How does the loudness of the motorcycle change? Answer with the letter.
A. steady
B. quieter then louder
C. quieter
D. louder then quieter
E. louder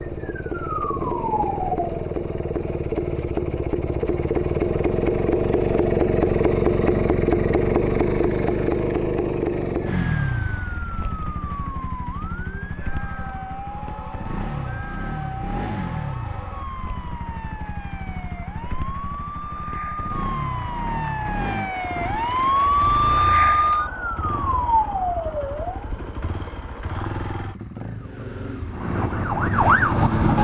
C.